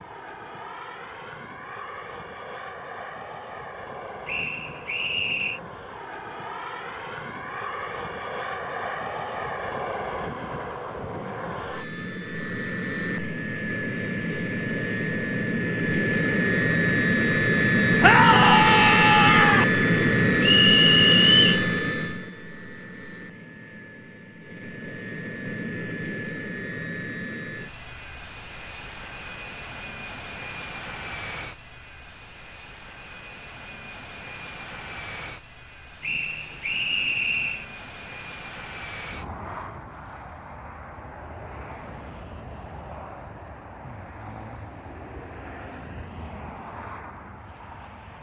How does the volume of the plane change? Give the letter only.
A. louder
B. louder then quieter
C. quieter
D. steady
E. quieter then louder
B.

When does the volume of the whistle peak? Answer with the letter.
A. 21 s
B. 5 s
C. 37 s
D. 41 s
A.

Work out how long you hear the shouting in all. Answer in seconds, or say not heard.
2 s.